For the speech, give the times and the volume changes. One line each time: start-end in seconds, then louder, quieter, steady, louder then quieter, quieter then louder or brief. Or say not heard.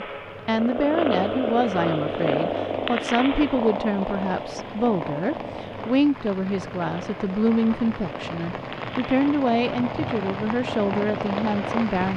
0.0-12.1 steady.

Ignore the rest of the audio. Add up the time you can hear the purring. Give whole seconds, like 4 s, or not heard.
12 s.